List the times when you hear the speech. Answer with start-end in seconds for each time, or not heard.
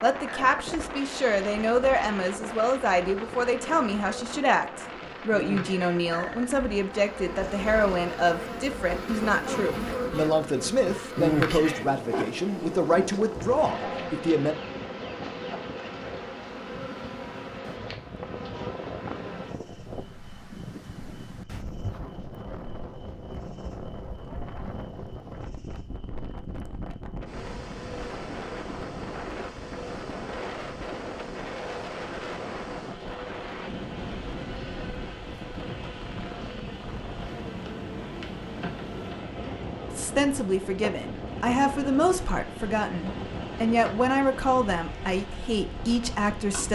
0.0-14.6, 39.9-46.7.